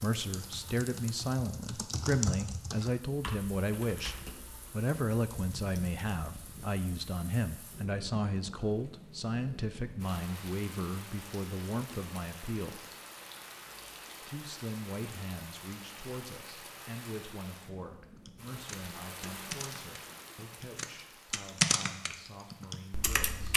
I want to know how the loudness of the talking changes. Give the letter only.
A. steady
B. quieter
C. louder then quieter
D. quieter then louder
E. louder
B.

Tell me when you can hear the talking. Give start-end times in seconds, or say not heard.
0.0-12.8, 14.2-23.5.